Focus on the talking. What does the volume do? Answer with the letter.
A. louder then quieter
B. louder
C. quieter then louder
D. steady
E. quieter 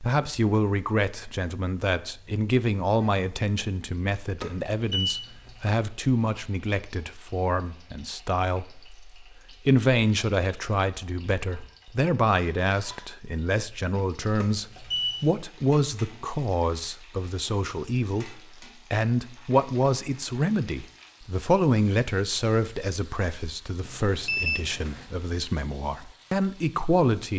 D.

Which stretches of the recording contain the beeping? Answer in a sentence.
The beeping can be heard from 4.4 to 5.8 s, from 14.4 to 15.2 s and from 23.9 to 25.1 s.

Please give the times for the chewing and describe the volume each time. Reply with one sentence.
You can't hear the chewing here.